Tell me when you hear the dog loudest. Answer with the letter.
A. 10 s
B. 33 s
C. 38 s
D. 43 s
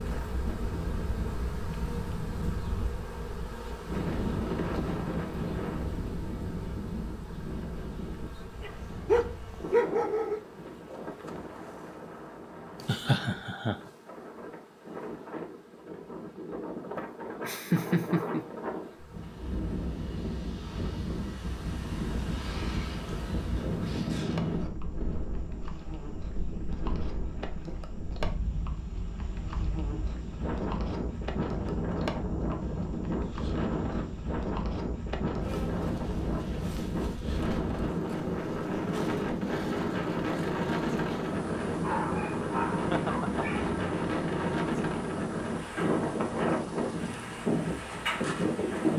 A.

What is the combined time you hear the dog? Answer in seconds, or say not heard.
4 s.